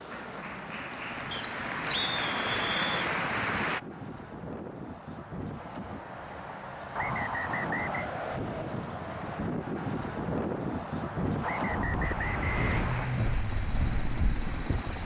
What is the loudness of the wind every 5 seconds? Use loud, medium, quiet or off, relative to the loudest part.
medium, loud, loud.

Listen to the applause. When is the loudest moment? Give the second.
3 s.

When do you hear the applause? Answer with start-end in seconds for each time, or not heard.
0.0-3.8, 12.0-15.0.